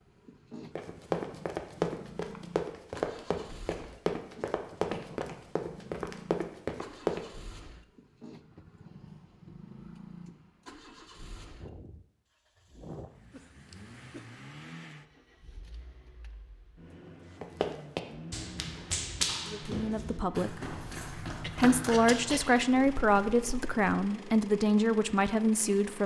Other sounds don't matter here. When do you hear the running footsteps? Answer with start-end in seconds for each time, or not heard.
0.8-7.2, 17.4-23.9.